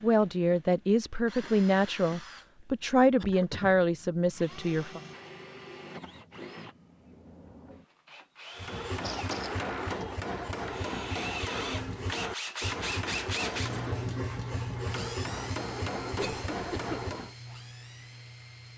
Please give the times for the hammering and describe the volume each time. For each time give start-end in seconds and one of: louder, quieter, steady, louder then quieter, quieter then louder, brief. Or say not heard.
8.6-17.4 steady.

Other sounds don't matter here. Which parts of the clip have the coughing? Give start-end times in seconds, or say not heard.
3.2-3.6, 9.0-10.1, 16.1-17.0.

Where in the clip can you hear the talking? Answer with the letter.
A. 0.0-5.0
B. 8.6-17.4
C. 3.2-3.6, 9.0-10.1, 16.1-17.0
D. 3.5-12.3
A.